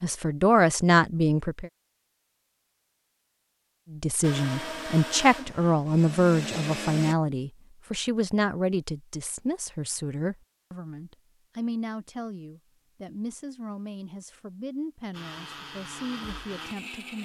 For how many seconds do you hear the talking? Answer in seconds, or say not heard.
15 s.